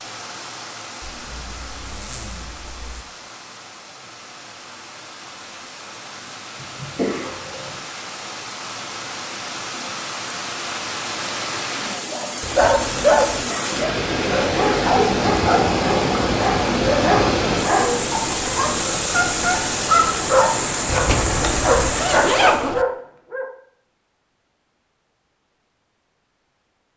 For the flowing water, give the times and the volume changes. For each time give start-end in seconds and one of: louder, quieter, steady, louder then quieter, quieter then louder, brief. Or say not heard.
0.0-22.6 louder.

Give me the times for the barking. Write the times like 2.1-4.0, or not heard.
12.1-23.4.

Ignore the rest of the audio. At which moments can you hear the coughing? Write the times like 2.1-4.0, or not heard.
6.5-7.8.